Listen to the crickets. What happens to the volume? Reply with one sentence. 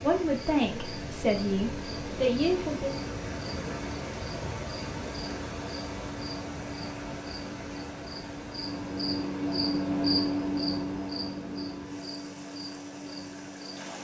The volume of the crickets goes up, then down.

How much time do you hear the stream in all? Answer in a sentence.
You can hear the stream for 14 seconds altogether.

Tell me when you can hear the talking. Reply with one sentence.
You can hear the talking from 0.0 to 3.0 s.